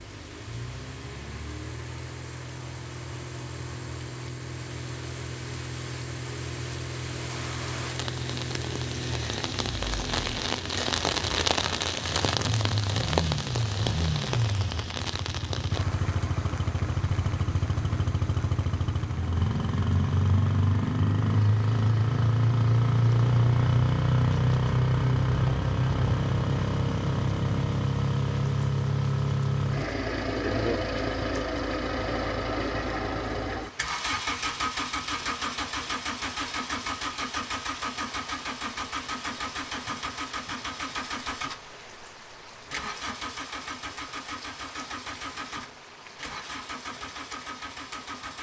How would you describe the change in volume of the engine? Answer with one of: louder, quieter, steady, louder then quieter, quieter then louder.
louder then quieter.